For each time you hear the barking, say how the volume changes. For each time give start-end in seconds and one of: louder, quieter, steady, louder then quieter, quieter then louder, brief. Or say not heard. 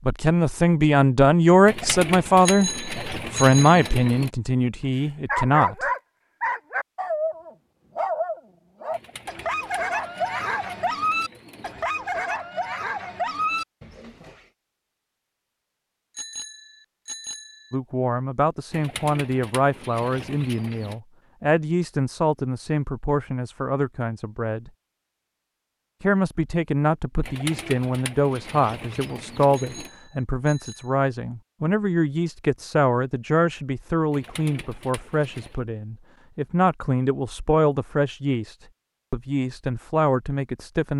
5.0-14.3 steady.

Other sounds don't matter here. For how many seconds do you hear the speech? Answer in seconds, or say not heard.
28 s.